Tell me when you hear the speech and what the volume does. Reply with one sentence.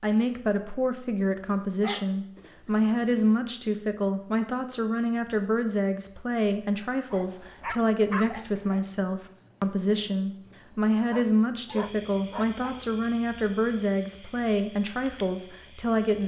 The speech can be heard from 0.0 to 16.2 s, at a steady volume.